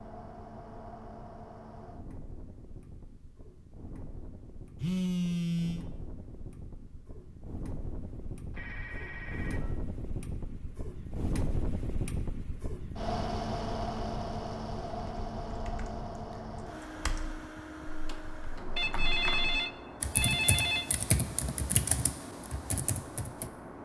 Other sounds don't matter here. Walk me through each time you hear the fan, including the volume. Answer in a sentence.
The fan can be heard from 0.0 to 23.8 s, getting louder then quieter.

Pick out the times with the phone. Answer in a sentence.
The phone can be heard from 4.8 to 5.8 s, from 8.5 to 9.8 s and from 18.8 to 20.9 s.